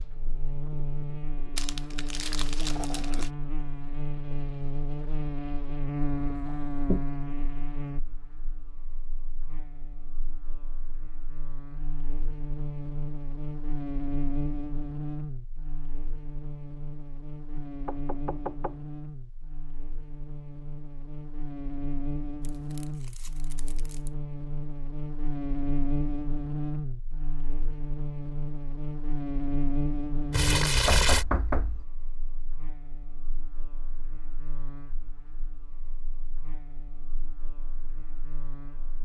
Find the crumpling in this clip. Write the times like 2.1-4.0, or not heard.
1.6-3.3, 22.4-24.1, 30.3-31.2.